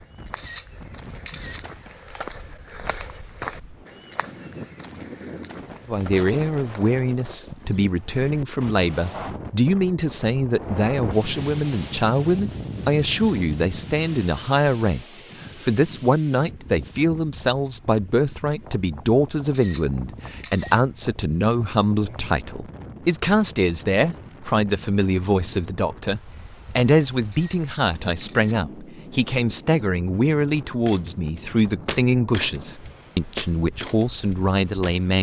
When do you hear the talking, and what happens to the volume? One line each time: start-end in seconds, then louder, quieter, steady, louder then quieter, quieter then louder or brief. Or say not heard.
5.8-35.1 steady.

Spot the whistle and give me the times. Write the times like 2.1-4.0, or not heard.
not heard.